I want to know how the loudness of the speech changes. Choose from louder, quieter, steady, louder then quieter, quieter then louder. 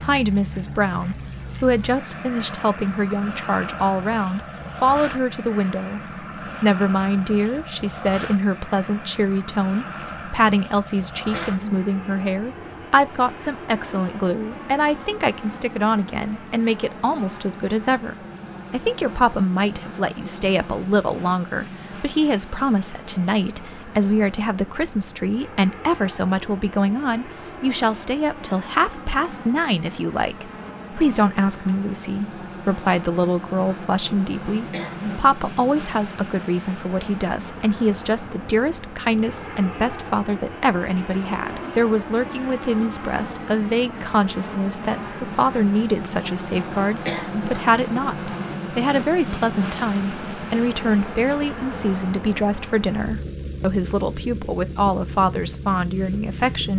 steady.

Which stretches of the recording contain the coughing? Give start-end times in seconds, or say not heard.
11.3-11.8, 34.7-35.2, 47.0-47.6.